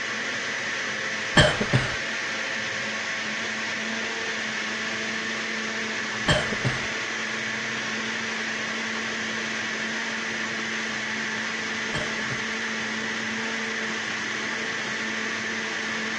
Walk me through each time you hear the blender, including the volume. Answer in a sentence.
The blender can be heard from 0.0 to 16.1 s, at a steady volume.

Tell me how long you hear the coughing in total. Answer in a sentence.
The coughing can be heard for 2 seconds in total.